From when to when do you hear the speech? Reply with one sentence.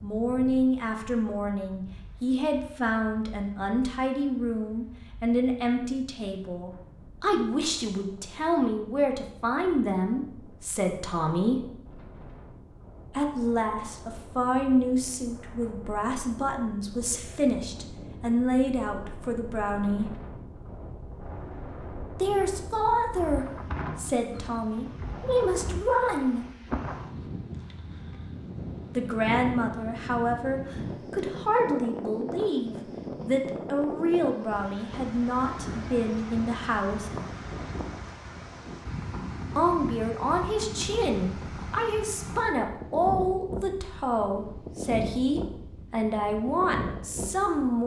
The speech can be heard from 0.0 to 11.6 s, from 13.2 to 20.1 s, from 22.1 to 26.4 s, from 28.9 to 37.1 s and from 39.5 to 47.8 s.